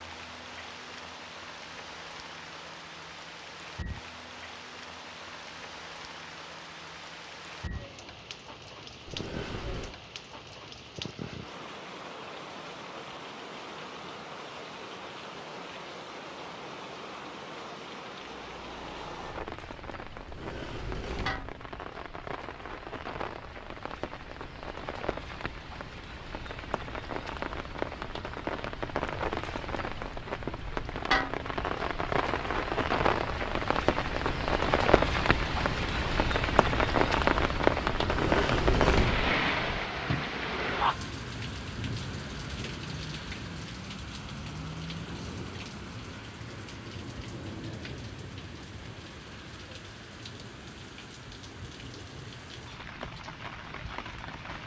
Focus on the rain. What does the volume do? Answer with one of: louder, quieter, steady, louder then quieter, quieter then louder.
louder then quieter.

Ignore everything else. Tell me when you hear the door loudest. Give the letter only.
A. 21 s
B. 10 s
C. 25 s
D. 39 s
D.